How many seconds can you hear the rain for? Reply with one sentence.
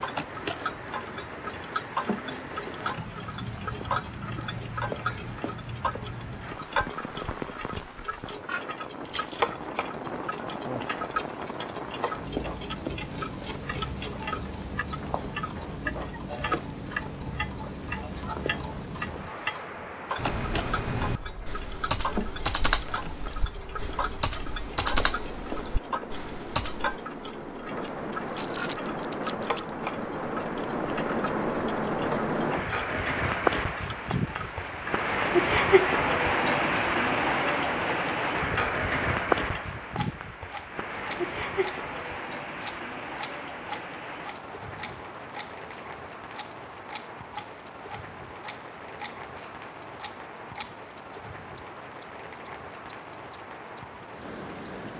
The rain can be heard for 55 seconds in total.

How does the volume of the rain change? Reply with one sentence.
The volume of the rain goes up, then down.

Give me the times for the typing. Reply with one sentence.
The typing can be heard from 20.1 to 27.0 s.